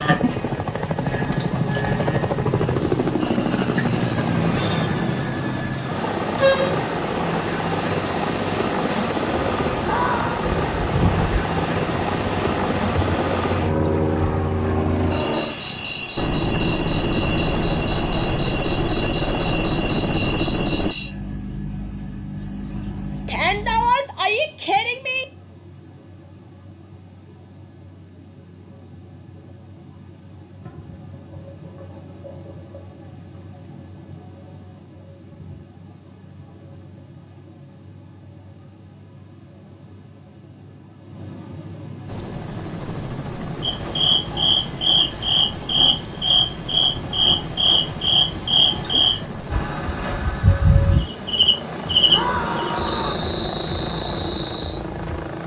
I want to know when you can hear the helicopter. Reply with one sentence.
The helicopter can be heard from 0.0 to 20.9 s and from 42.0 to 55.4 s.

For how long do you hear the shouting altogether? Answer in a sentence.
You can hear the shouting for 4 seconds altogether.